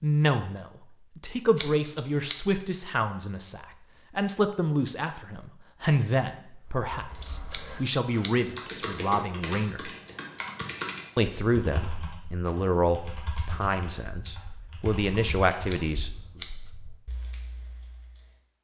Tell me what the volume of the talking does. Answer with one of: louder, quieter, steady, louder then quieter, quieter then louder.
steady.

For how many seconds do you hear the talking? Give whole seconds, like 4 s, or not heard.
15 s.